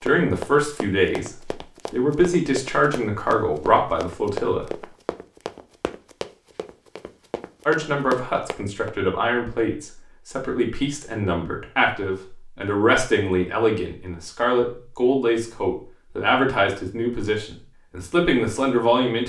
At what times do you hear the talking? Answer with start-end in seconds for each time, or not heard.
0.0-1.3, 1.9-4.7, 7.7-19.2.